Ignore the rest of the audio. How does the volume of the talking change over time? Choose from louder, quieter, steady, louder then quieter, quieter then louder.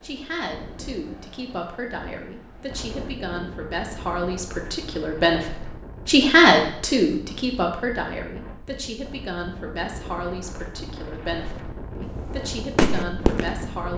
louder then quieter.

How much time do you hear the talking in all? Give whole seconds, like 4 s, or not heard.
14 s.